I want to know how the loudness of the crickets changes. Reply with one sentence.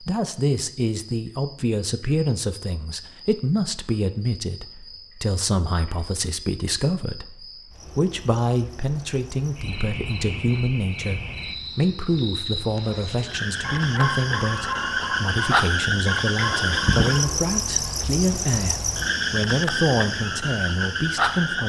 The loudness of the crickets goes up.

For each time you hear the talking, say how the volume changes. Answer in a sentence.
The talking can be heard from 0.0 to 21.6 s, at a steady volume.